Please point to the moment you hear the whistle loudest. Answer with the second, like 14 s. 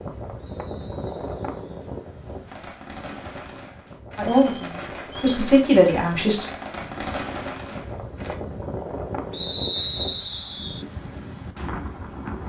10 s.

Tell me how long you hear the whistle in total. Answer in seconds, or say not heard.
4 s.